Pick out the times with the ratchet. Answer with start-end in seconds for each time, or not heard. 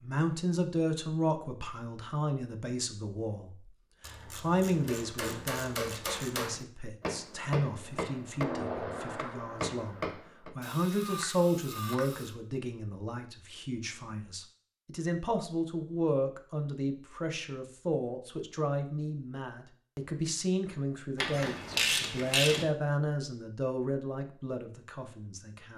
4.0-6.5, 10.6-12.3, 21.1-22.6.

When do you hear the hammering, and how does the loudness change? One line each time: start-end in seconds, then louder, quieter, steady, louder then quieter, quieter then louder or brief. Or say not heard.
4.8-10.5 steady.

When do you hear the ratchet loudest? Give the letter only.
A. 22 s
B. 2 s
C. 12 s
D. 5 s
A.